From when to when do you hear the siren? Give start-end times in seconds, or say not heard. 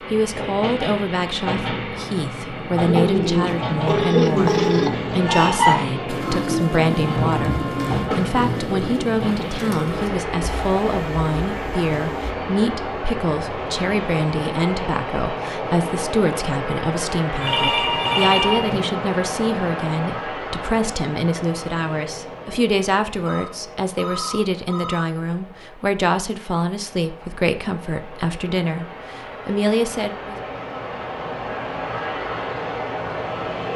not heard.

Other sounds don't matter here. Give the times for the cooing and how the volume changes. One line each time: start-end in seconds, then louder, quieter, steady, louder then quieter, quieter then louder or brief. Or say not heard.
2.8-12.3 quieter.